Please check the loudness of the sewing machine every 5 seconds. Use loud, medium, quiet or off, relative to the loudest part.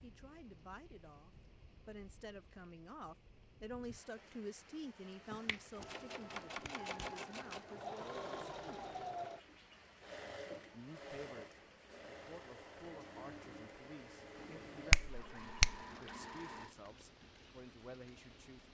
off, loud, medium, medium.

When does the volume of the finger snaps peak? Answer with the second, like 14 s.
15 s.